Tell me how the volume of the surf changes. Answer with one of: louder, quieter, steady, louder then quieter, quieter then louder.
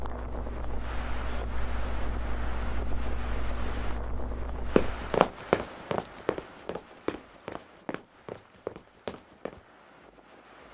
quieter.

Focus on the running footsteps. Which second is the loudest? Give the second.
5 s.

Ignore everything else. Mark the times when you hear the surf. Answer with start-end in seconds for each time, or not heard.
0.0-10.6.